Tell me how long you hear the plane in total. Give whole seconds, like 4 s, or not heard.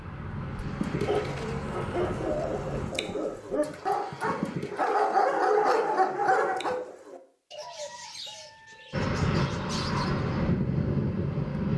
6 s.